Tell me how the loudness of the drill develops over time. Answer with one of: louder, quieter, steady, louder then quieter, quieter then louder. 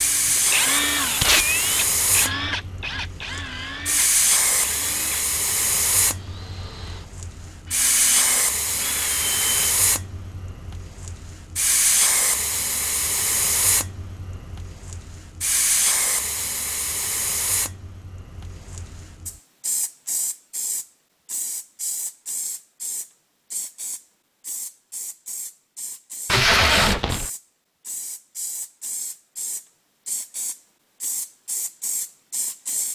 quieter then louder.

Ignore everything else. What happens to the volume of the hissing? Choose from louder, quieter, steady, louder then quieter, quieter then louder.
quieter.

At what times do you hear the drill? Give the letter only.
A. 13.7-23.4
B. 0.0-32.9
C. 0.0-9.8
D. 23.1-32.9
C.